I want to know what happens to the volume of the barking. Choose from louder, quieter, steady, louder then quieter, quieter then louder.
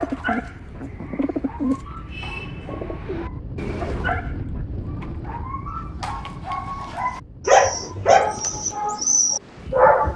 louder.